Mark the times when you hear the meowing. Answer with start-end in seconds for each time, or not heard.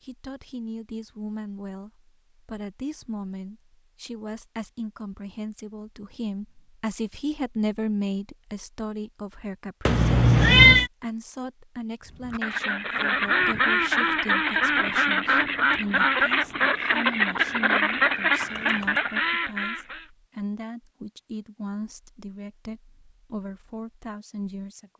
9.8-10.9, 18.4-19.0.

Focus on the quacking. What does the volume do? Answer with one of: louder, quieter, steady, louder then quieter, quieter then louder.
steady.